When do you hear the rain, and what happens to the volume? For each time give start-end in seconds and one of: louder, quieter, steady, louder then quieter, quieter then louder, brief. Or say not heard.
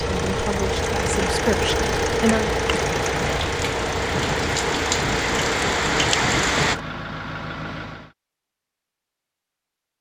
0.0-6.8 louder.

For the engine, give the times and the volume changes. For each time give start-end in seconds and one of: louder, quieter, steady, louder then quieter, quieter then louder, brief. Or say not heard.
0.0-8.2 quieter.